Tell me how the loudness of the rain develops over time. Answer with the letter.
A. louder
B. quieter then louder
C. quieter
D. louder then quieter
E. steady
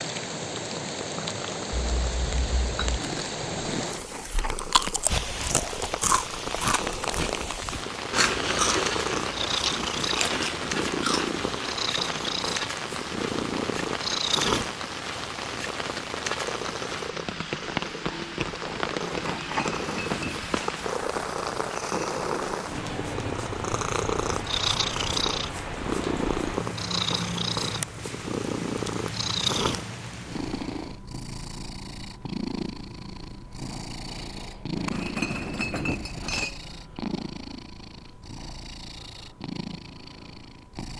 E.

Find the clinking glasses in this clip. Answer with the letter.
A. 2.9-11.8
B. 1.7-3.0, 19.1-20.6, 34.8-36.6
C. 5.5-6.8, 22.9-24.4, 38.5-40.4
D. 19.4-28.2
B.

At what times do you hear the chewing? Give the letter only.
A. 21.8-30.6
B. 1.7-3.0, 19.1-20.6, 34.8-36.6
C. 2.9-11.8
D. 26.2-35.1
C.